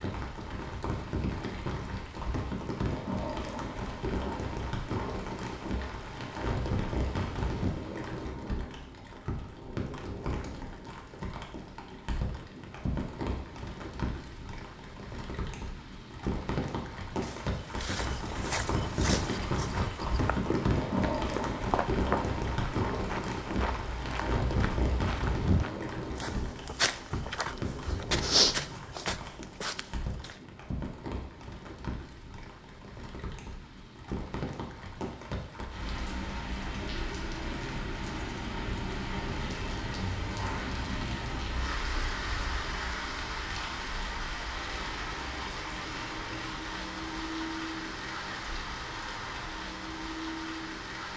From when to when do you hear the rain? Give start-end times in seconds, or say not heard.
0.0-51.1.